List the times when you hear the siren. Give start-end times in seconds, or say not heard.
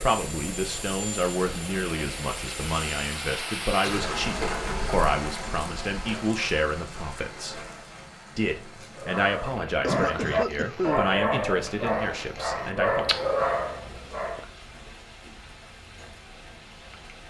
not heard.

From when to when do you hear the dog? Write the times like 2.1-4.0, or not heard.
8.9-14.5.